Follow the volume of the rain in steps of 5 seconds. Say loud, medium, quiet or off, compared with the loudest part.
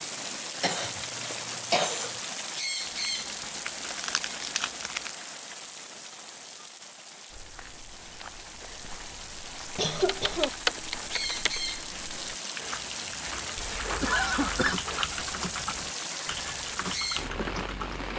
loud, medium, loud, loud.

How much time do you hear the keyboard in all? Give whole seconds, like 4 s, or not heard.
6 s.